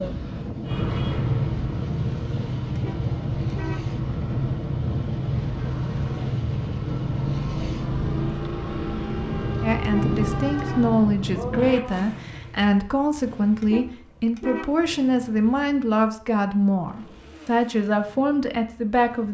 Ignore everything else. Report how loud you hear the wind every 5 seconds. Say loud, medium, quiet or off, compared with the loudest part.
loud, loud, loud, off.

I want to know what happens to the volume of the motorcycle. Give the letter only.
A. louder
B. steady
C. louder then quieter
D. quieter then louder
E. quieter
E.